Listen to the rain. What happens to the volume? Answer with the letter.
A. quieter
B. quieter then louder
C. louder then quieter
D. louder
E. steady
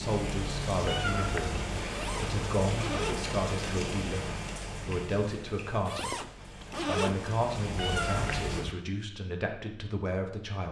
B.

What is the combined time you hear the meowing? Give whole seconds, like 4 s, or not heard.
2 s.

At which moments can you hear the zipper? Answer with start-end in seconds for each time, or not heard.
1.9-3.3, 5.8-7.4.